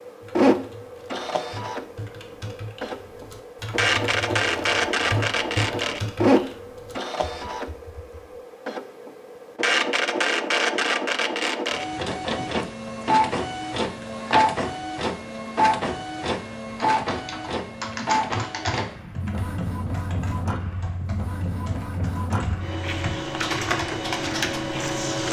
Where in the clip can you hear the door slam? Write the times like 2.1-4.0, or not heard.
not heard.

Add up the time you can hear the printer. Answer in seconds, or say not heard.
25 s.